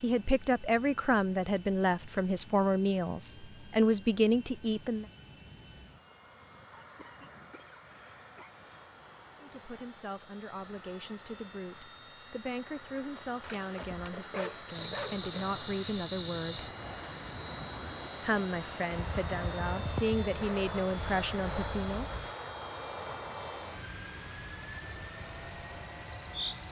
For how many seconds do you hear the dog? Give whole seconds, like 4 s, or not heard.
2 s.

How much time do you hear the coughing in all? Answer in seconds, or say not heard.
2 s.